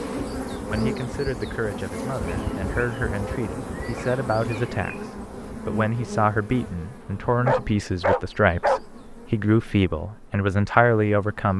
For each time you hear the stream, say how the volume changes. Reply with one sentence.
The stream can't be heard in this clip.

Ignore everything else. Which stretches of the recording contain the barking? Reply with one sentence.
You can hear the barking from 7.5 to 8.8 s.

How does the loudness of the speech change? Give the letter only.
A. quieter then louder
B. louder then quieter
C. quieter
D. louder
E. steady
D.